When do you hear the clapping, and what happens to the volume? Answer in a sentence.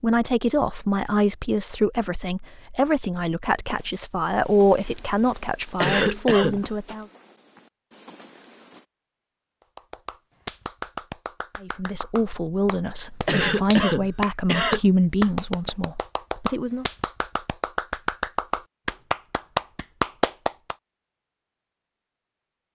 The clapping can be heard from 9.8 to 20.8 s, getting louder.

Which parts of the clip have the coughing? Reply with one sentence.
You can hear the coughing from 5.8 to 6.6 s and from 13.2 to 14.8 s.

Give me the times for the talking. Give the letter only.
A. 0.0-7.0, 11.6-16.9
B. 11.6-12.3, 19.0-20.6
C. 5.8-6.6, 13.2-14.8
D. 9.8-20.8
A.